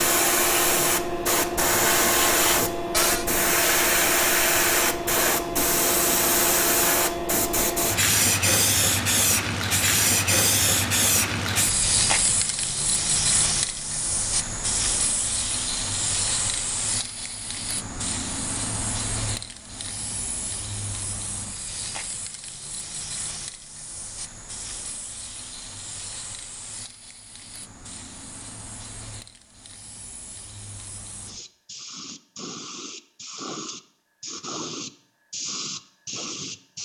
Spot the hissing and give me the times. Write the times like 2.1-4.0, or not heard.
0.0-36.7.